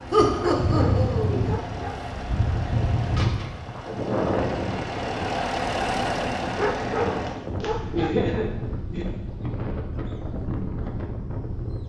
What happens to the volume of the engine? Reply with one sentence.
The volume of the engine goes up.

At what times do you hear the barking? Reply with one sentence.
The barking can be heard from 0.4 to 2.0 s and from 6.5 to 8.2 s.